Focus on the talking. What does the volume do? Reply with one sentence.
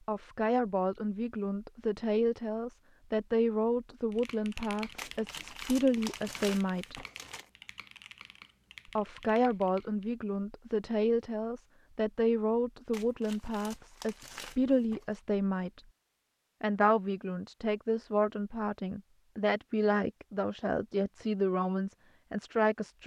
The volume of the talking stays about the same.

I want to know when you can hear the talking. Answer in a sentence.
The talking can be heard from 0.1 to 7.0 s, from 8.9 to 15.8 s and from 16.6 to 23.0 s.